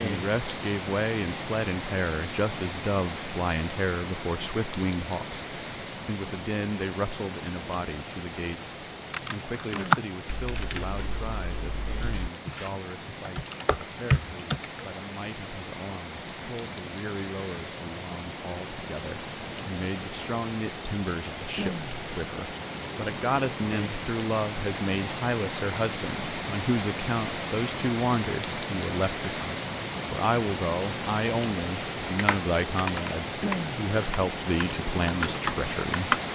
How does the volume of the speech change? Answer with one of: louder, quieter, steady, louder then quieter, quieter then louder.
quieter then louder.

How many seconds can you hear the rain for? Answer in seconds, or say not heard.
36 s.